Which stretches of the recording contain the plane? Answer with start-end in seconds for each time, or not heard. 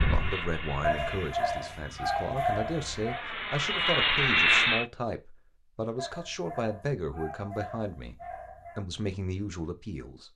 0.0-4.8.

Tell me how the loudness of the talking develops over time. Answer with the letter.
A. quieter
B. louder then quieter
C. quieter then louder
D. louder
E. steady
E.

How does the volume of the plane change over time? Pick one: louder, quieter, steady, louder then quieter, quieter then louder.
quieter then louder.